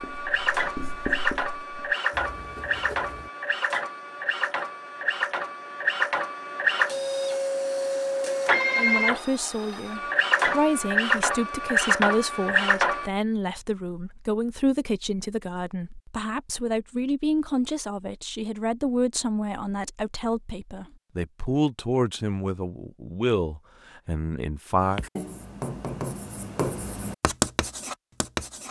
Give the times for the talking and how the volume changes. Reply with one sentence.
The talking can be heard from 8.8 to 25.0 s, at a steady volume.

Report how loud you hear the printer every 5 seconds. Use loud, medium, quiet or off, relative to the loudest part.
medium, loud, loud, off, off, off.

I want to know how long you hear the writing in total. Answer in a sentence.
The writing can be heard for 7 seconds in total.